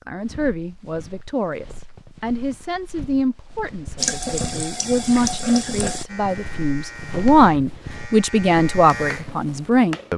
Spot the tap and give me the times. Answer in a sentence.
The tap can be heard from 4.0 to 6.0 s.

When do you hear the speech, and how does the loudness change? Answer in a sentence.
You can hear the speech from 0.1 to 10.1 s, getting louder.